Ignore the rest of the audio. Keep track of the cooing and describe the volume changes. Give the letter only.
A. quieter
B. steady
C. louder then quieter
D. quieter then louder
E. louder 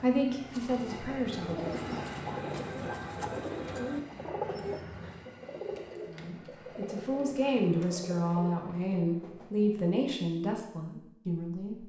A.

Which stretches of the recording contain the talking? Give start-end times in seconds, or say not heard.
0.0-1.8, 6.1-11.8.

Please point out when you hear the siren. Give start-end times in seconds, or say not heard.
not heard.